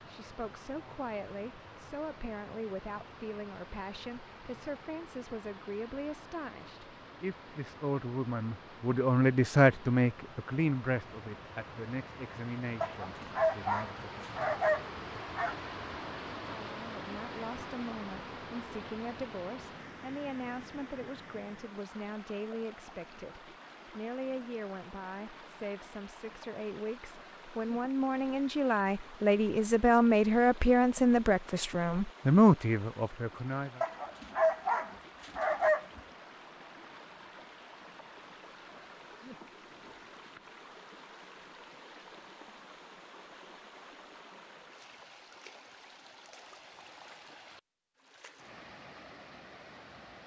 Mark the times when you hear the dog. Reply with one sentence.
The dog can be heard from 12.8 to 15.6 s and from 33.8 to 36.0 s.